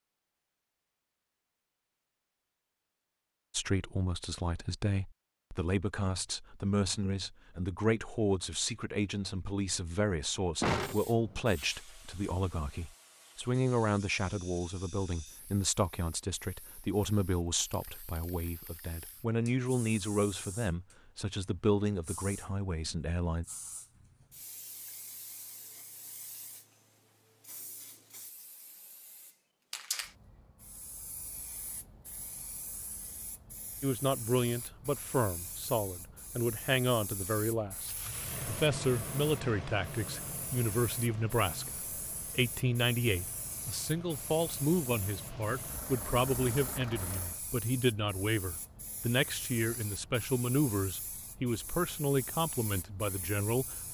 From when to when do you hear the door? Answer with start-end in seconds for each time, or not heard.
10.6-11.4.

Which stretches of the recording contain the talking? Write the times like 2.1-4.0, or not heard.
3.5-23.4, 33.8-41.8, 42.4-53.8.